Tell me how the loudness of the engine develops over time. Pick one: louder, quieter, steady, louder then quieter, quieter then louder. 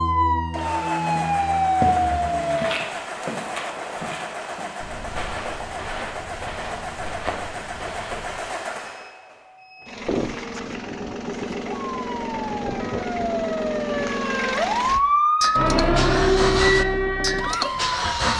louder.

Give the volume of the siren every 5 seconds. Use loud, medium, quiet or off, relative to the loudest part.
loud, off, medium, loud.